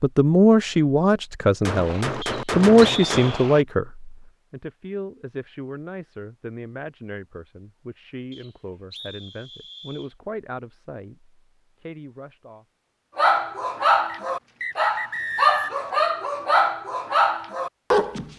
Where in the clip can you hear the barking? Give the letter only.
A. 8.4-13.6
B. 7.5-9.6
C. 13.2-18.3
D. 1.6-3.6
C.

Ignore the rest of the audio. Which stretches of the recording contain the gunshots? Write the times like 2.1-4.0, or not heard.
1.6-3.6.